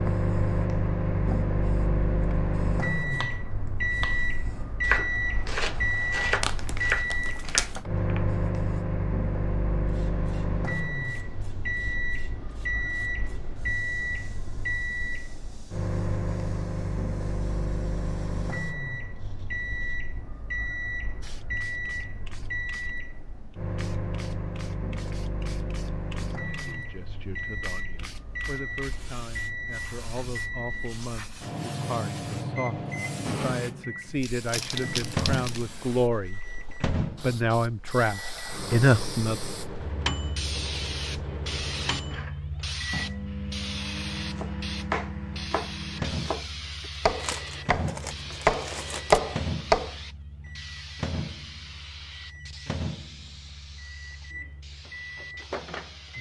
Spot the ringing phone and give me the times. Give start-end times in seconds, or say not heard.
not heard.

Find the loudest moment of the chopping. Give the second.
49 s.